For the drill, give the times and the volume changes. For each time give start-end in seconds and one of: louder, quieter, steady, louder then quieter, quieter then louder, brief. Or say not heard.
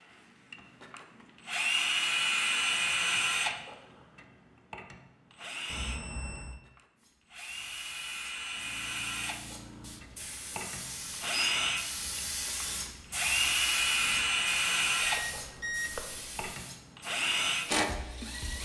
0.1-18.5 quieter then louder.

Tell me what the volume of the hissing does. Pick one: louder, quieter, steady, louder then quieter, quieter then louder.
louder then quieter.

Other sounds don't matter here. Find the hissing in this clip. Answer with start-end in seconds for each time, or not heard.
7.0-18.5.